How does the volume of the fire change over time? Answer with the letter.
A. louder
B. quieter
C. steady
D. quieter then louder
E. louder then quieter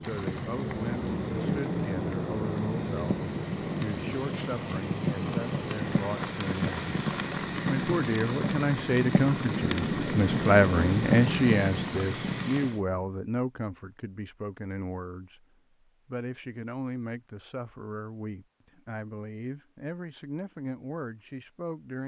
A.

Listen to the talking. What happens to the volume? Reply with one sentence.
The volume of the talking goes up, then down.